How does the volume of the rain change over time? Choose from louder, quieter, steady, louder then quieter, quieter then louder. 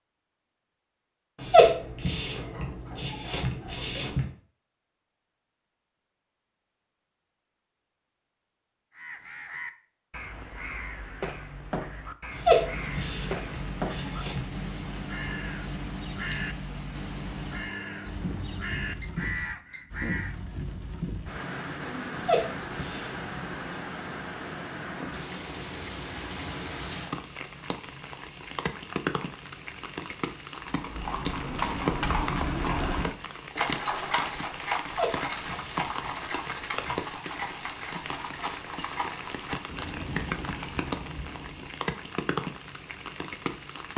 steady.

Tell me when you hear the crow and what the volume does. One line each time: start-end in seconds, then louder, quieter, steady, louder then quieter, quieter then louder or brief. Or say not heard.
8.9-20.4 steady.